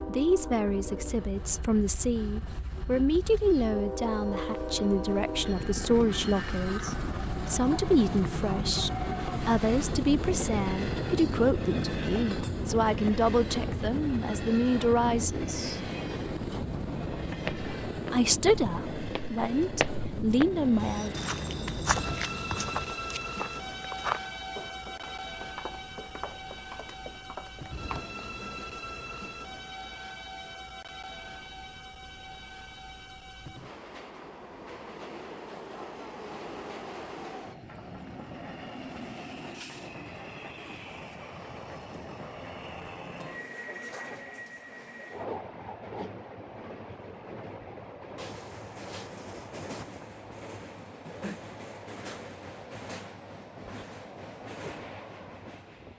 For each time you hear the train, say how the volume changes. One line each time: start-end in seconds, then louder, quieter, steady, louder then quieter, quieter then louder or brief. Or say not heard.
0.0-55.9 quieter.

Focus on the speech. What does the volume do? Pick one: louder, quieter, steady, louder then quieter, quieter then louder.
steady.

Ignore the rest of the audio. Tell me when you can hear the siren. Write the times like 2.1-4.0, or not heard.
not heard.